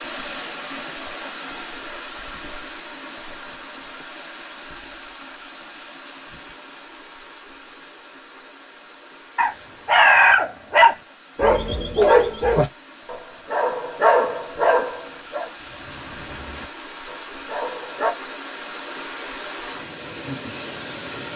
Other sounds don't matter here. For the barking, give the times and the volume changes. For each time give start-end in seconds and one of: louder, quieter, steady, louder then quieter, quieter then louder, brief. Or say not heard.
9.3-18.1 quieter.